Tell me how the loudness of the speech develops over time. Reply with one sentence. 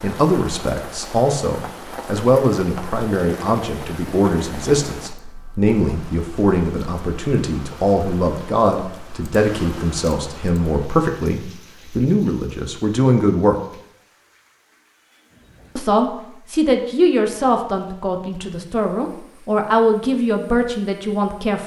The volume of the speech stays about the same.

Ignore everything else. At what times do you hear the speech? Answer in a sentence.
The speech can be heard from 0.0 to 13.6 s and from 15.8 to 21.6 s.